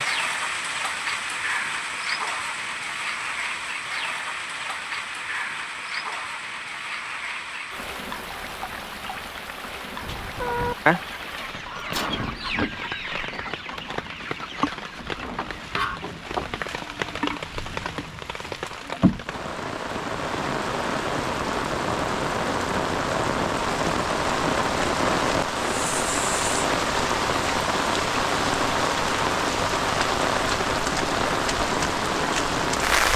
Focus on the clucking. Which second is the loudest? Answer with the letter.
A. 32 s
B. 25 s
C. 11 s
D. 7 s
C.